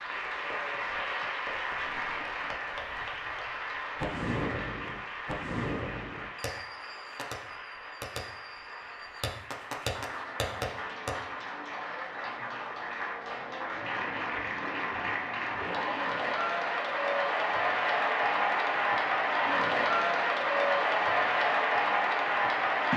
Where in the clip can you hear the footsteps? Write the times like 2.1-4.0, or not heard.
not heard.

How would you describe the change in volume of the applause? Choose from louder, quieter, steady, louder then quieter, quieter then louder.
quieter then louder.